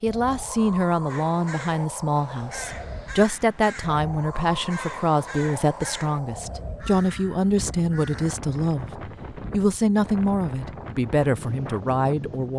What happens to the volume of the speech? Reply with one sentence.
The loudness of the speech stays about the same.